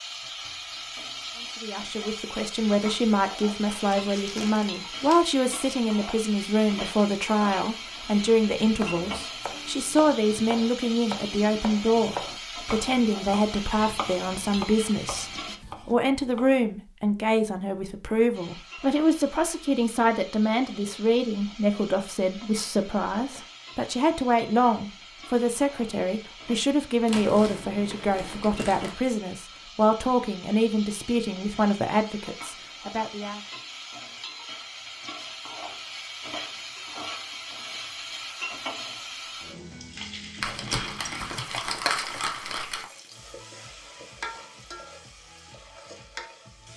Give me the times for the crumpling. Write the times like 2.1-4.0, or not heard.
4.0-5.3, 27.1-28.9, 40.4-42.9.